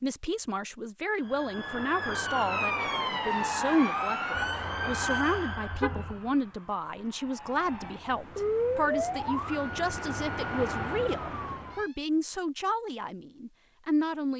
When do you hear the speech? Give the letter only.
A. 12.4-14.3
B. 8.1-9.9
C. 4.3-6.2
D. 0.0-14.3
D.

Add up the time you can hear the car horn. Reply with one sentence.
You can hear the car horn for 2 seconds altogether.